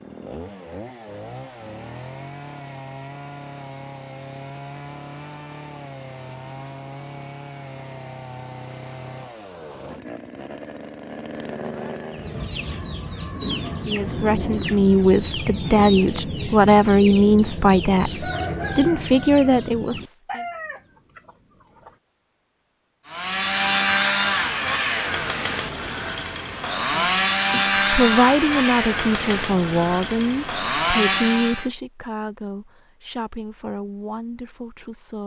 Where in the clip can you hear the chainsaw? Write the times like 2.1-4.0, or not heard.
0.0-12.4, 23.1-31.7.